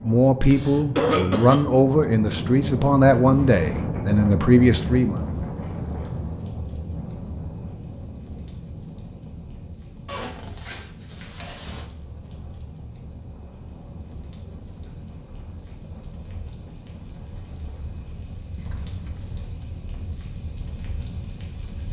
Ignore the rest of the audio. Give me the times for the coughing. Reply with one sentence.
You can hear the coughing from 0.5 to 1.6 s.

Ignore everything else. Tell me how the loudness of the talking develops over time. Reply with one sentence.
The volume of the talking stays about the same.